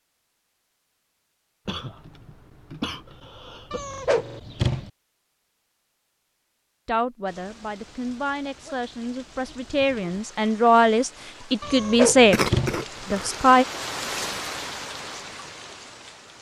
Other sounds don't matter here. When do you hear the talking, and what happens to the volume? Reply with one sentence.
The talking can be heard from 6.8 to 13.7 s, getting louder.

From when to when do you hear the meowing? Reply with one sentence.
You can hear the meowing from 3.7 to 4.9 s and from 11.6 to 12.8 s.